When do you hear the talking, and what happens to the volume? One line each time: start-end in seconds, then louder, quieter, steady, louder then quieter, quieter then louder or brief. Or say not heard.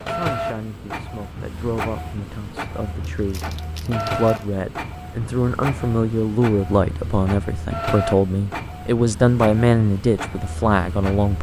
0.0-11.3 louder.